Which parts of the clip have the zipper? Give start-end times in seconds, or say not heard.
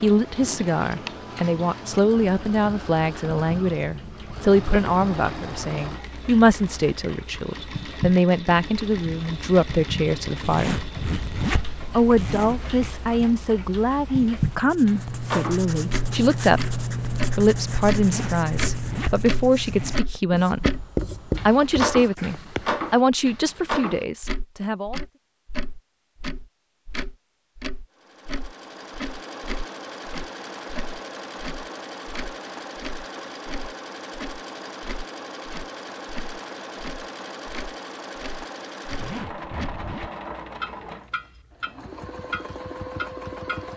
10.4-12.9, 17.9-20.0, 38.9-40.1.